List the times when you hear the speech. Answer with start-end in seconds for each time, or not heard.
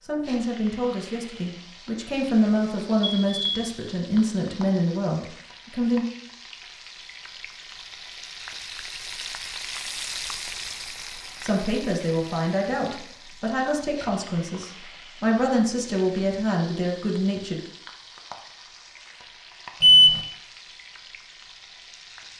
0.0-6.0, 11.4-17.6.